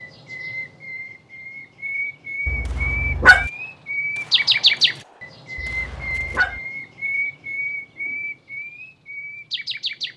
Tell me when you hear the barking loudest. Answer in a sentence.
The loudest moment of the barking is at 3 seconds.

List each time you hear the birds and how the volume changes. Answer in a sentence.
You can hear the birds from 0.0 to 10.1 s, getting louder then quieter.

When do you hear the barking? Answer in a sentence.
The barking can be heard from 2.5 to 3.5 s and from 5.5 to 6.6 s.